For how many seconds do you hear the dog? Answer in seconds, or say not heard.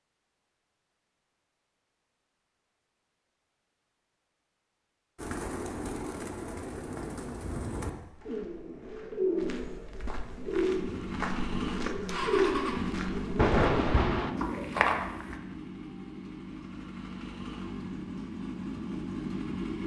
not heard.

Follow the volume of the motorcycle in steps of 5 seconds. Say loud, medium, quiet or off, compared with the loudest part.
off, off, loud, loud.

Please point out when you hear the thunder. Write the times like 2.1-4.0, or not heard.
13.3-14.3.